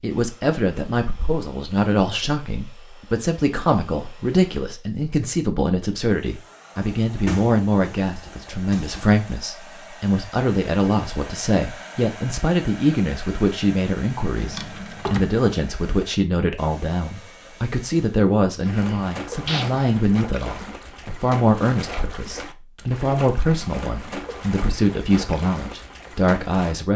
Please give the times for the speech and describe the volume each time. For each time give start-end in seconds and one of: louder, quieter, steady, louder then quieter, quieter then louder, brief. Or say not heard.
0.0-26.9 steady.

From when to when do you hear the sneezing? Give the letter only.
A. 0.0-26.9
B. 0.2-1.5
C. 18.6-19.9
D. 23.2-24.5
C.